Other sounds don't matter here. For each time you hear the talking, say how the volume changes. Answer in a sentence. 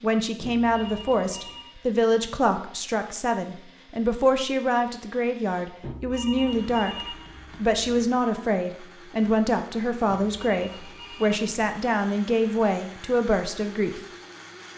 The talking can be heard from 0.0 to 14.1 s, at a steady volume.